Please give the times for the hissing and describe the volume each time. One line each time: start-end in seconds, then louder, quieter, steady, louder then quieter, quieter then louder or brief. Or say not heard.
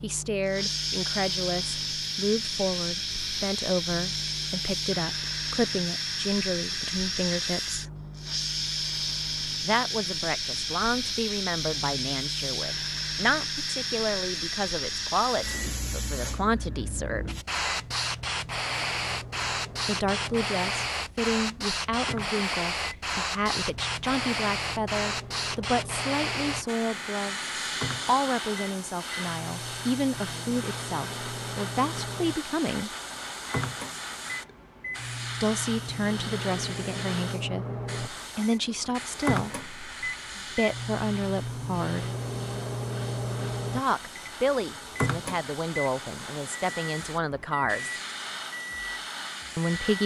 0.5-50.0 quieter.